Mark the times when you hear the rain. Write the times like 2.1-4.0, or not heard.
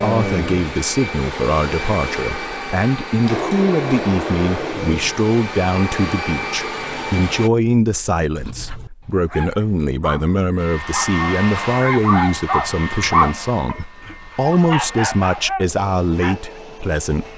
not heard.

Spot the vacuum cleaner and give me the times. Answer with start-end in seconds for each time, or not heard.
0.0-7.5, 10.6-17.3.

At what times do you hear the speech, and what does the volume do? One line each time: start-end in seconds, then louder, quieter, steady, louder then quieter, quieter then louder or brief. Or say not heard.
0.0-17.3 steady.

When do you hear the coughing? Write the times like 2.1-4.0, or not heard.
not heard.